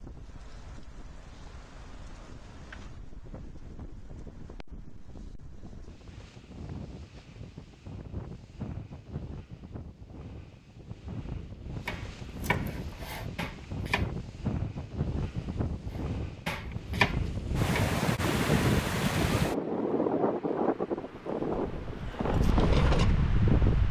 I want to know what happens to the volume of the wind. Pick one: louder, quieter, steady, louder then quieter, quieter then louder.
louder.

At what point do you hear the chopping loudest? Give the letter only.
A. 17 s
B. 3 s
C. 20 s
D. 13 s
A.